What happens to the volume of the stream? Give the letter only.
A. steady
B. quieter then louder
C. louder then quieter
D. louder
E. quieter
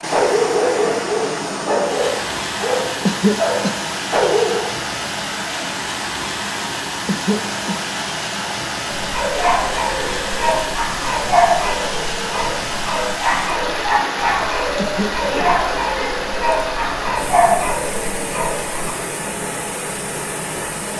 A.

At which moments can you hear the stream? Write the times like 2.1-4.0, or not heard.
0.0-20.9.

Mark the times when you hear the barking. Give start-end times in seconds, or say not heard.
0.0-4.7, 8.9-18.9.